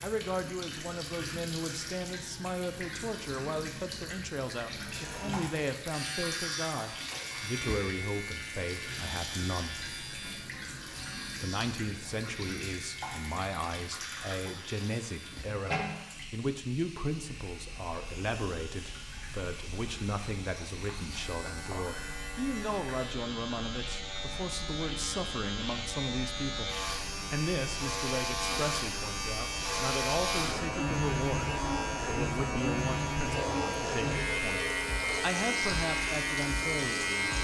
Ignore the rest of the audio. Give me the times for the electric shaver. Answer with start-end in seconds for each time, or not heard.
4.8-37.3.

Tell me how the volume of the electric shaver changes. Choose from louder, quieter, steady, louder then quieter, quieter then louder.
quieter then louder.